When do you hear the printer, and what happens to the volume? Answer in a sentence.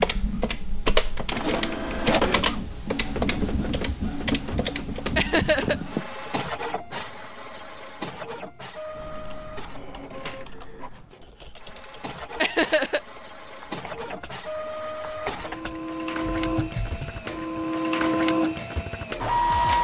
The printer can be heard from 0.0 to 19.7 s, getting quieter then louder.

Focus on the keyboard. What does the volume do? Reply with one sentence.
The loudness of the keyboard goes down, then up.